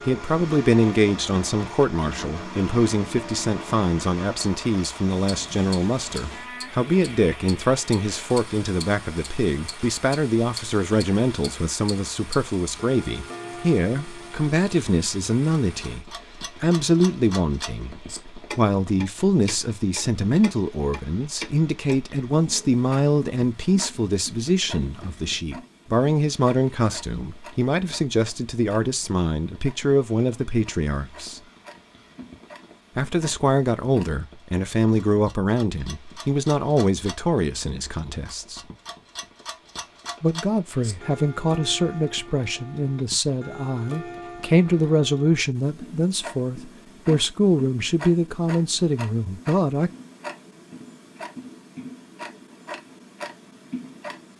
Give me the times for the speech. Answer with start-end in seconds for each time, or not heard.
0.1-31.4, 33.0-38.6, 40.2-49.9.